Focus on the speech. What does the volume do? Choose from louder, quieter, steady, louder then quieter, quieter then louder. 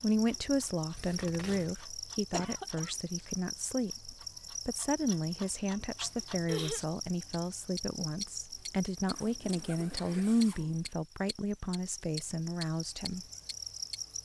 steady.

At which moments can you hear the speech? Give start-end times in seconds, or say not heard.
0.0-13.2.